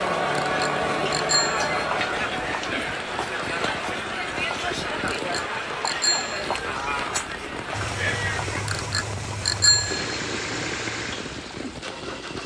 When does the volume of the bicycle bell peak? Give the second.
10 s.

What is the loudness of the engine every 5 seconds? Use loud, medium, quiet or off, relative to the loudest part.
off, loud, loud.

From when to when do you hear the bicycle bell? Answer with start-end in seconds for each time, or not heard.
0.3-1.7, 5.0-6.5, 8.7-10.2.